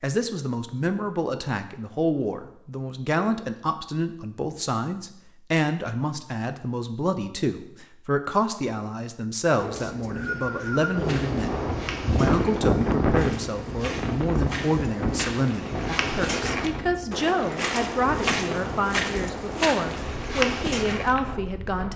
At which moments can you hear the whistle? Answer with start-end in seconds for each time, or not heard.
9.8-10.9.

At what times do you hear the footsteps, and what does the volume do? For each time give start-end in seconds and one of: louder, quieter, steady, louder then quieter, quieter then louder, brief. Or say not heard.
11.0-21.2 louder.